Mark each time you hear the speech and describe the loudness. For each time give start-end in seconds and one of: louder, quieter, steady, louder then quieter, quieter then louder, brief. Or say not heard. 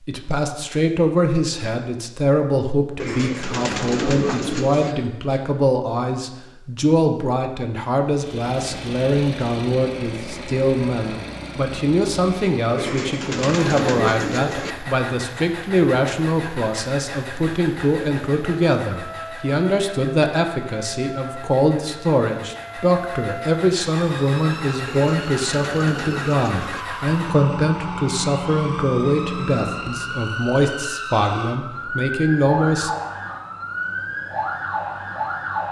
0.1-32.9 steady.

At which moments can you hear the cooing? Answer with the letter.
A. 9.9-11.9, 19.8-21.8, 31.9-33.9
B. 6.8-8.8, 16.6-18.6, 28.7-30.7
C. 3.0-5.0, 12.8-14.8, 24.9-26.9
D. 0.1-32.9
C.